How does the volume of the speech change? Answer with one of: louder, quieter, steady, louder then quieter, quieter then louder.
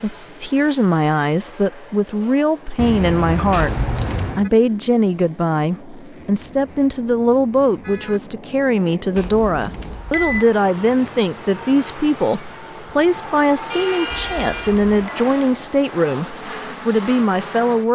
steady.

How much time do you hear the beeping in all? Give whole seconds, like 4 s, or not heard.
3 s.